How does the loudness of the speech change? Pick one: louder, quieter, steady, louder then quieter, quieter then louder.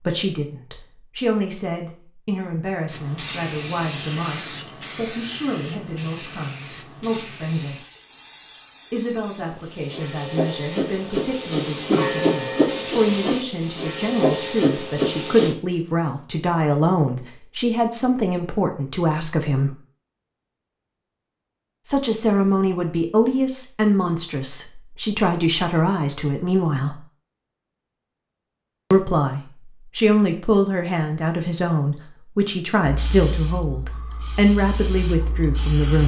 louder.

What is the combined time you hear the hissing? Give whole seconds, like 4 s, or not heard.
16 s.